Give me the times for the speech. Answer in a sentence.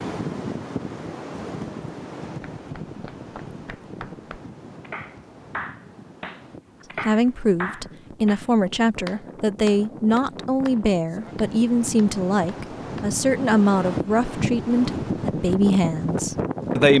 The speech can be heard from 7.0 to 16.9 s.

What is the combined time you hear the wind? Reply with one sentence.
You can hear the wind for 17 seconds altogether.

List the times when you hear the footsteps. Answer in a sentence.
You can't hear the footsteps here.